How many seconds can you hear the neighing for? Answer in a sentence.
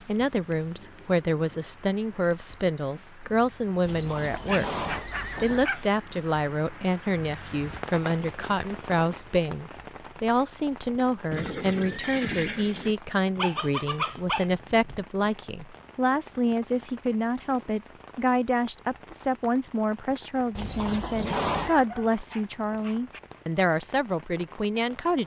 You can hear the neighing for 5 seconds altogether.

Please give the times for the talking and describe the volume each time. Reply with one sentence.
You can hear the talking from 0.1 to 25.2 s, at a steady volume.